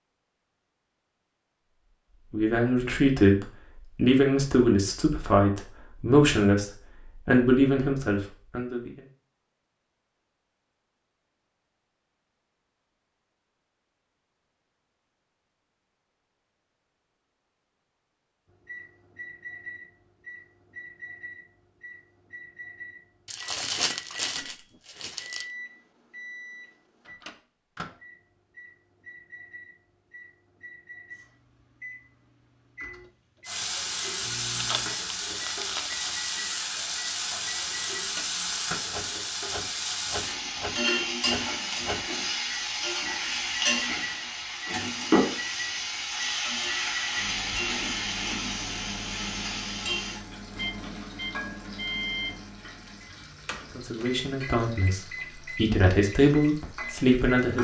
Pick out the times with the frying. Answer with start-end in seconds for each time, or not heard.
33.5-57.6.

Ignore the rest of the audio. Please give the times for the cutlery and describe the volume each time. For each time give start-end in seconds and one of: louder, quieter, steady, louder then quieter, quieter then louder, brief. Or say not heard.
not heard.